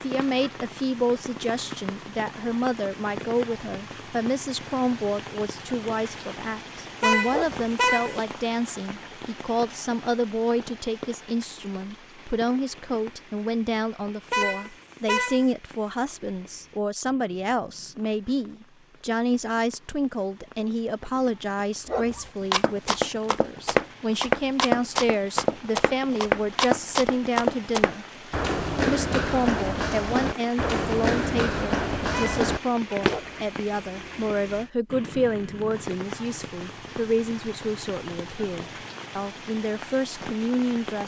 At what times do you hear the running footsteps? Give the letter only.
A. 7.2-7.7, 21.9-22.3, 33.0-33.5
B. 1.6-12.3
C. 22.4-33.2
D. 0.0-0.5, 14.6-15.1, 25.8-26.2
C.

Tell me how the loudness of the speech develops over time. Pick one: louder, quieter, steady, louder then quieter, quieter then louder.
steady.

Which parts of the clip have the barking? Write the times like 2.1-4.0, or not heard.
7.2-7.7, 21.9-22.3, 33.0-33.5.